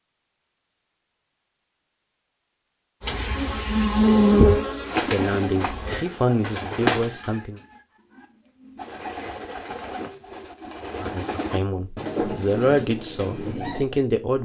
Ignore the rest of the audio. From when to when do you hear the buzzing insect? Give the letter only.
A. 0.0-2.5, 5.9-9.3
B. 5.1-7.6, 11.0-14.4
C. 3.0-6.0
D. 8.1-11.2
C.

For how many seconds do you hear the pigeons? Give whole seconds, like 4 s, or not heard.
9 s.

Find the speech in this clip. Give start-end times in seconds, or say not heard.
5.1-7.6, 11.0-14.4.